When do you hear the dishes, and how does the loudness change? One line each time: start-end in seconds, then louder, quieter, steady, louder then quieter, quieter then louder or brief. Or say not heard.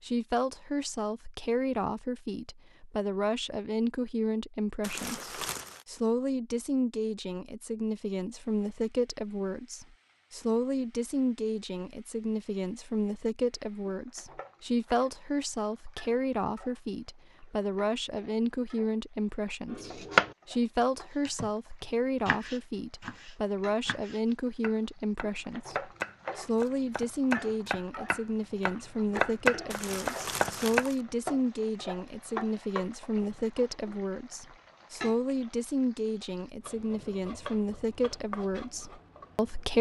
not heard.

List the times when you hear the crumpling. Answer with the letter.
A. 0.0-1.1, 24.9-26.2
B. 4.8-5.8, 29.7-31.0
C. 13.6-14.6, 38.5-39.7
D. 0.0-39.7
B.